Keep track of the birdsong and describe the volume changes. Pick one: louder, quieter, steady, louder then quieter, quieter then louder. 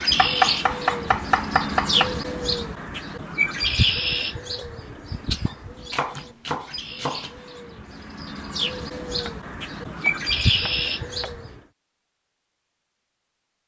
quieter then louder.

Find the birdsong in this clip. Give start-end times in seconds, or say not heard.
0.0-11.6.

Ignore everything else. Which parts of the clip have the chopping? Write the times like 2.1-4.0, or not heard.
0.1-2.1, 5.5-7.3, 9.1-11.6.